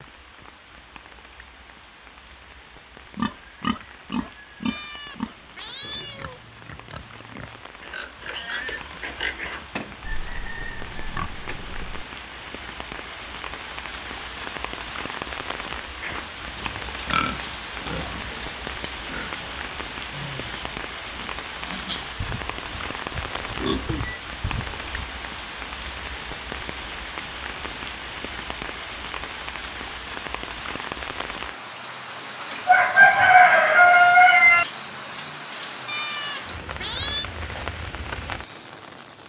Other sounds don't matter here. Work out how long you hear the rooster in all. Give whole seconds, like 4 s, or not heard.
4 s.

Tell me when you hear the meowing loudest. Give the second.
37 s.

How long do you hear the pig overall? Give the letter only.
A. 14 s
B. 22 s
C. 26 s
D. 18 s
D.